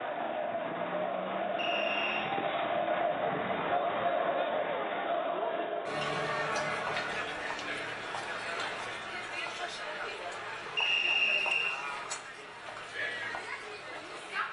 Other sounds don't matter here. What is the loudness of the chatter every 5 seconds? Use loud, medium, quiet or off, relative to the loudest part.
loud, loud, medium.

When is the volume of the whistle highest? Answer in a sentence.
The loudest moment of the whistle is at 11 seconds.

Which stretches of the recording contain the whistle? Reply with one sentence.
The whistle can be heard from 1.6 to 2.4 s and from 10.8 to 11.8 s.